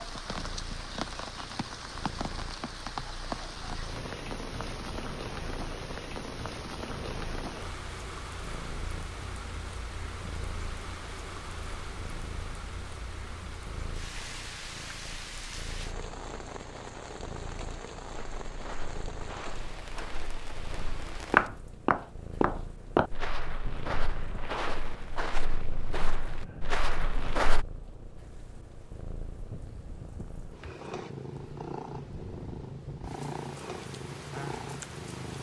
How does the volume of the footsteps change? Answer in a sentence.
The volume of the footsteps goes up, then down.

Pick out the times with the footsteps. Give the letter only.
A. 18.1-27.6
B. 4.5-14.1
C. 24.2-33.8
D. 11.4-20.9
A.